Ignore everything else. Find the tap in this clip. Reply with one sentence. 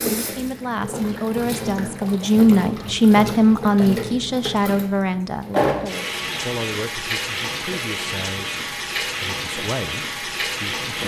The tap can be heard from 0.0 to 11.0 s.